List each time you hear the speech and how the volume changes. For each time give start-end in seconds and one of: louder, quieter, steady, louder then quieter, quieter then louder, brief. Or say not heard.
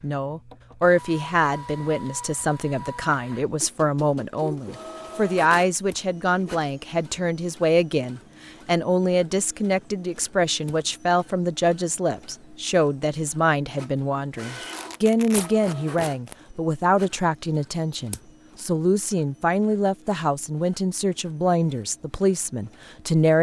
0.0-23.3 steady.